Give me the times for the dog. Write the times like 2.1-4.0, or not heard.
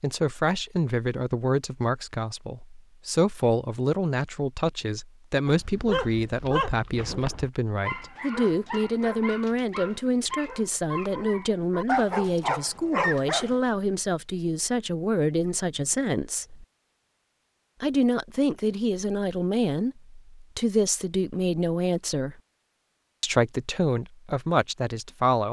5.5-13.6.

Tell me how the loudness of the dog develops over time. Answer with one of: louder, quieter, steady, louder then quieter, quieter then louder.
quieter then louder.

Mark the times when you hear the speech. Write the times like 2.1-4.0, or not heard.
0.0-16.6, 17.8-22.4, 23.2-25.4.